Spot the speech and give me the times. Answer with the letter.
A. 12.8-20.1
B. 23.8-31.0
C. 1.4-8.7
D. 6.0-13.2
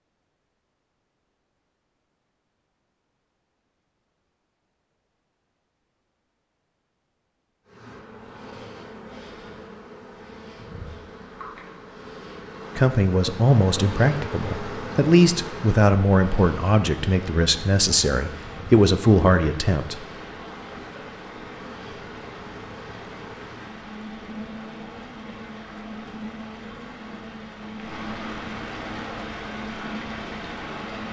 A.